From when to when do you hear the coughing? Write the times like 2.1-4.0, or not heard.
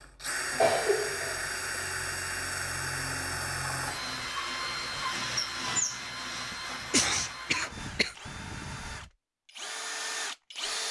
0.5-1.9, 6.5-8.2.